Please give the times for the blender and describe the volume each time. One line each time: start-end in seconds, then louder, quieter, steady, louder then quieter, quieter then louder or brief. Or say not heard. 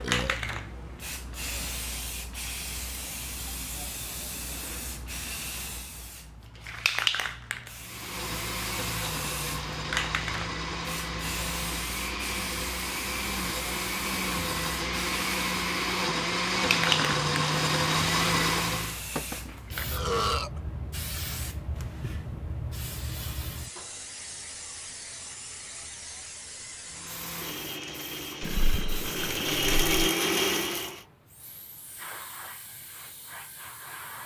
7.8-19.0 louder
26.9-31.1 louder.